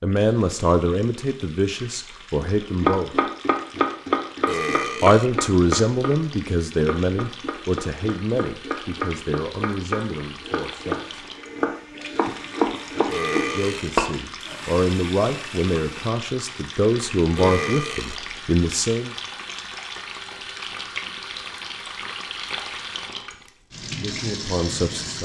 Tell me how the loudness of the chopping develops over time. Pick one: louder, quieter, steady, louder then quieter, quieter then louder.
quieter then louder.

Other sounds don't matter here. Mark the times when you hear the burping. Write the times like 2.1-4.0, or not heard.
4.5-5.3, 13.1-13.9, 17.4-18.2.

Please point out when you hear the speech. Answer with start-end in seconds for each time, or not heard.
0.0-3.1, 5.0-11.2, 13.5-19.1, 23.3-25.2.